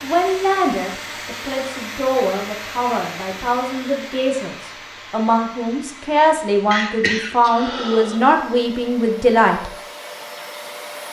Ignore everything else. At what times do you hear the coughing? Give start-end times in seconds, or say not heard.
6.7-8.2.